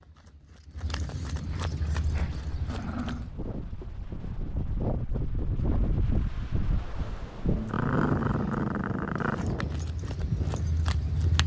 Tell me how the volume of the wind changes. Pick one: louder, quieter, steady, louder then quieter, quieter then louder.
louder then quieter.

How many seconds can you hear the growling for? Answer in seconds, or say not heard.
4 s.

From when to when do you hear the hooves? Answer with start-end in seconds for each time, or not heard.
0.0-3.4, 9.3-11.4.